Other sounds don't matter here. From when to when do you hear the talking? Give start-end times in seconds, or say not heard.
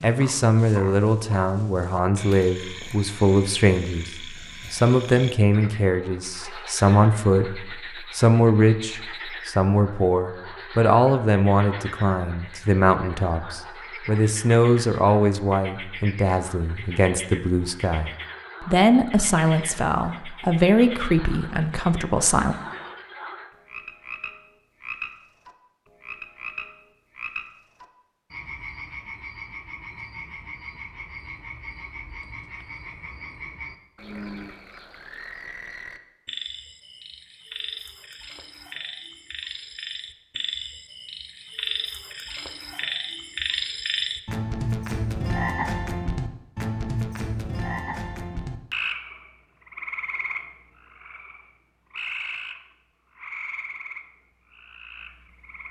0.0-22.6.